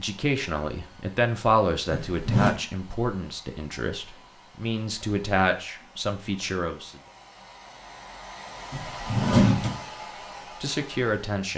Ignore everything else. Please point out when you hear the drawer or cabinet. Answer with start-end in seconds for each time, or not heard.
1.9-2.5, 8.7-9.8.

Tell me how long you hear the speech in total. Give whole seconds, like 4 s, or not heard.
8 s.